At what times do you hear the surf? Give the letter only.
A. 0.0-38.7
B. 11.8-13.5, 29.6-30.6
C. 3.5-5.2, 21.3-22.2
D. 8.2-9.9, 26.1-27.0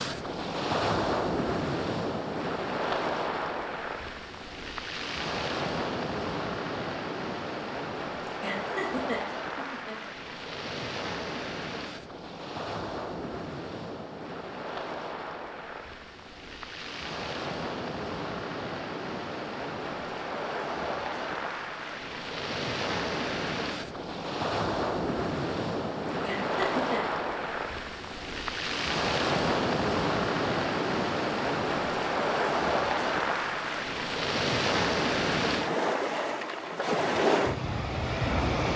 A.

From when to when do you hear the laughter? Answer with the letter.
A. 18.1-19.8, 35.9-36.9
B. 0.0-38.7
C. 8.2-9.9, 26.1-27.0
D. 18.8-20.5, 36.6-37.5
C.